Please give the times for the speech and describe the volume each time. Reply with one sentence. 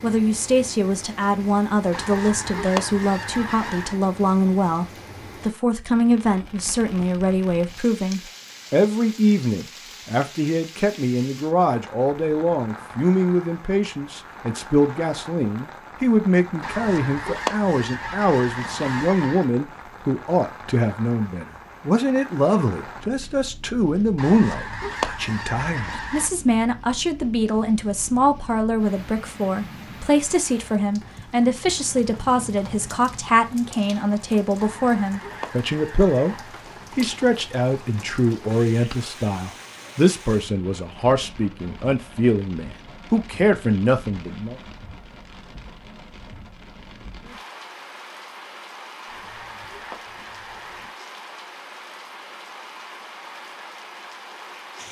You can hear the speech from 0.0 to 44.5 s, at a steady volume.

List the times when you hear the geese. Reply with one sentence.
You can hear the geese from 1.9 to 4.0 s, from 16.6 to 19.5 s, from 24.1 to 26.3 s, from 34.5 to 36.6 s and from 49.0 to 51.0 s.